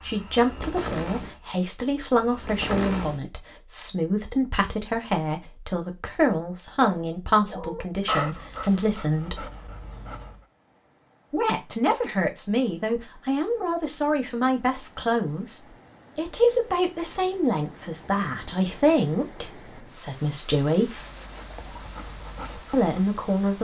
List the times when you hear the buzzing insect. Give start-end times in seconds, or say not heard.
0.0-3.2.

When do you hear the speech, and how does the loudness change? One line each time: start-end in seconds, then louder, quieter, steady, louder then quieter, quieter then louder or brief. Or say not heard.
0.0-9.4 steady
11.3-21.0 steady
22.7-23.5 brief.